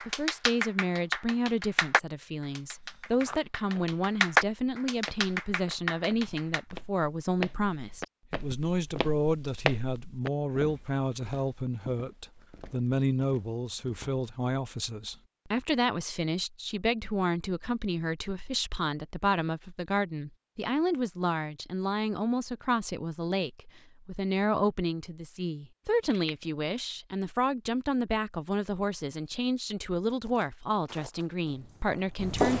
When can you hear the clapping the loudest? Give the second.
4 s.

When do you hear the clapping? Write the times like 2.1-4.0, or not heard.
0.0-6.6.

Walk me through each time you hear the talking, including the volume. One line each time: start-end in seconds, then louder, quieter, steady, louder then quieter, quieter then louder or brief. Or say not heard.
0.0-32.5 steady.